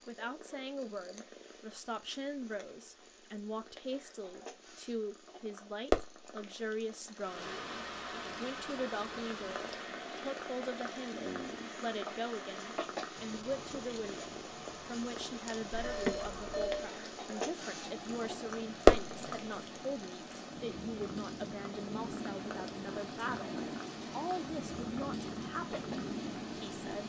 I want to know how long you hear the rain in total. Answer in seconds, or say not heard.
20 s.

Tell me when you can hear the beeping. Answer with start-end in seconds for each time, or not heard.
15.7-16.9.